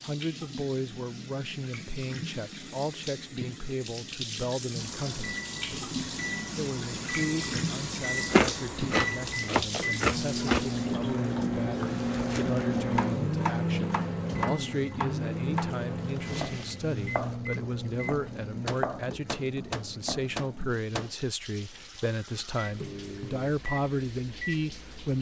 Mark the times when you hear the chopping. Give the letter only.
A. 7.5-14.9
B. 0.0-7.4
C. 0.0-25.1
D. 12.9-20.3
D.